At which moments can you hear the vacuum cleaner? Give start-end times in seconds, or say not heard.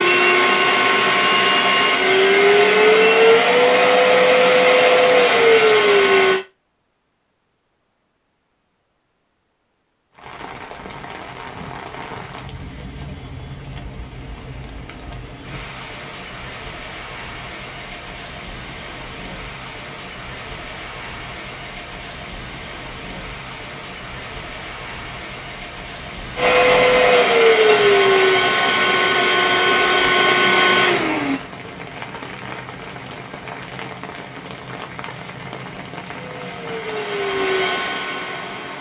0.0-6.4, 26.4-31.4, 36.0-38.7.